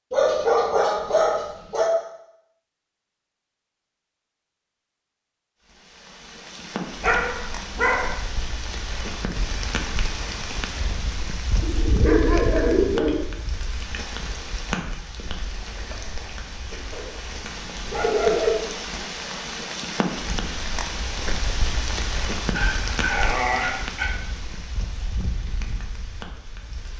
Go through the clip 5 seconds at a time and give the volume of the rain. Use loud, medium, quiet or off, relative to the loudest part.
off, loud, loud, loud, loud, medium.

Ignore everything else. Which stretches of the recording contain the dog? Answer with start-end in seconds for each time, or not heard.
0.1-1.9, 7.0-8.2, 11.6-13.2, 16.9-18.6, 22.4-24.1.